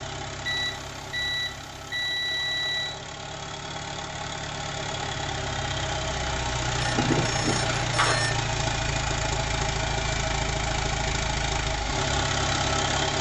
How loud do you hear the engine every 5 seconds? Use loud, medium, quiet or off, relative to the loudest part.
medium, loud, loud.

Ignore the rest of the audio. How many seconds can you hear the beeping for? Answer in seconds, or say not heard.
4 s.